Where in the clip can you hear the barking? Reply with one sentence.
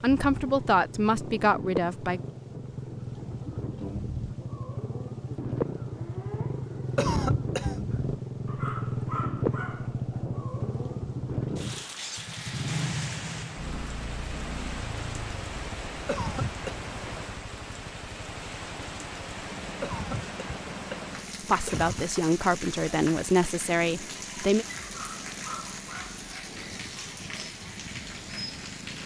The barking can be heard from 8.4 to 10.4 s and from 24.8 to 26.8 s.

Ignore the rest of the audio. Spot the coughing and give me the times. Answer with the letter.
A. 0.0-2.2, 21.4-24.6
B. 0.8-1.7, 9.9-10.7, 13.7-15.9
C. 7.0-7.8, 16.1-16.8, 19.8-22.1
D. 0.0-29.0
C.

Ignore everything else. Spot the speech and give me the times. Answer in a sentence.
The speech can be heard from 0.0 to 2.2 s and from 21.4 to 24.6 s.